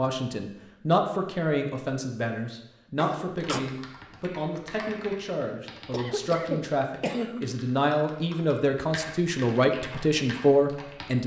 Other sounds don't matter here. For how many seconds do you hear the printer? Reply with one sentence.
The printer can't be heard in this clip.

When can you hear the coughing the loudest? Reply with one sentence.
The loudest moment of the coughing is at 7 seconds.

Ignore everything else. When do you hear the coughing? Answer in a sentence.
The coughing can be heard from 3.0 to 3.6 s and from 5.9 to 7.5 s.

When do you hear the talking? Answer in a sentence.
You can hear the talking from 0.0 to 11.2 s.